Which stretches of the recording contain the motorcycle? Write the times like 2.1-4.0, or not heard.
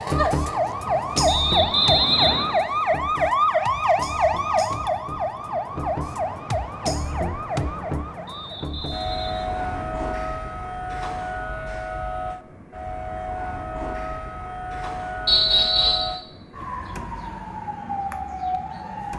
not heard.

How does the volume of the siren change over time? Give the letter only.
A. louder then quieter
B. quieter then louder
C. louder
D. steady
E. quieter
E.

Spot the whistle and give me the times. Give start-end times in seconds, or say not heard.
1.2-2.5, 8.2-9.9, 15.2-16.1.